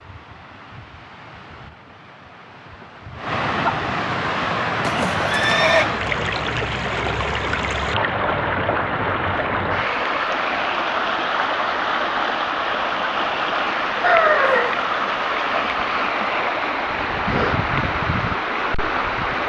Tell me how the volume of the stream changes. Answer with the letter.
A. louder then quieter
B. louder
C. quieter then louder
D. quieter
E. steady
B.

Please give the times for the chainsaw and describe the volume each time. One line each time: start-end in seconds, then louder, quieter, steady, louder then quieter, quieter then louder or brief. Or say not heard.
not heard.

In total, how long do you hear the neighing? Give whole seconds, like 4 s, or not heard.
2 s.